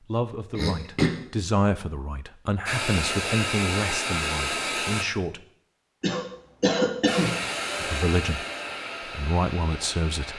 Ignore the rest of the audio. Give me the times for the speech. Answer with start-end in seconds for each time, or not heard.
0.0-5.5, 7.8-8.4, 9.2-10.3.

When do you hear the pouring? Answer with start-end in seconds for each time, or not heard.
not heard.